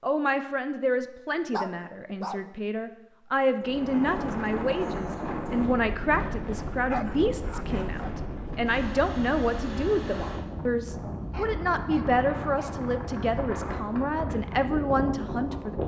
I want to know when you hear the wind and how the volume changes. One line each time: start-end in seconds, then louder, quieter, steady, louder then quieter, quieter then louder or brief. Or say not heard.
3.6-15.8 steady.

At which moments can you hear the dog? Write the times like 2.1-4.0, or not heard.
1.5-2.5, 6.8-8.2, 11.3-12.8.